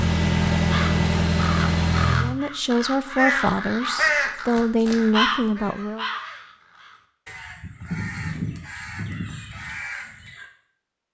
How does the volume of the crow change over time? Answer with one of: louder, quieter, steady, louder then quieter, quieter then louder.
louder then quieter.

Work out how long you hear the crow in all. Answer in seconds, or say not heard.
10 s.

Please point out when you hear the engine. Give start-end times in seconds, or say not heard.
0.0-2.4.